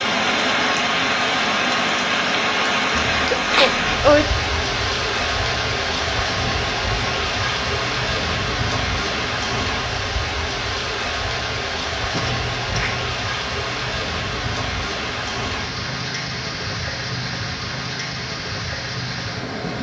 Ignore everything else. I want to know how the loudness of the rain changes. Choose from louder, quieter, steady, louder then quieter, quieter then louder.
quieter.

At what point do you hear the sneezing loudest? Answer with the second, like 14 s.
4 s.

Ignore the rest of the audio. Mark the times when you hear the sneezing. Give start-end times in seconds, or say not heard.
3.0-4.2, 12.1-13.3.